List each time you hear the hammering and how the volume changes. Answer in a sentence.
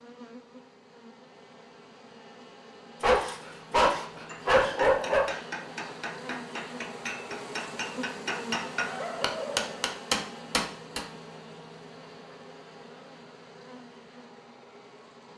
You can hear the hammering from 4.1 to 11.1 s, getting louder.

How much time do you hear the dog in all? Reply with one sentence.
You can hear the dog for 3 seconds altogether.